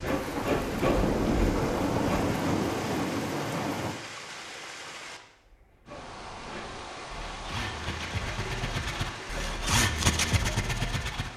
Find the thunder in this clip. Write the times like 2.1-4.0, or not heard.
0.1-4.0.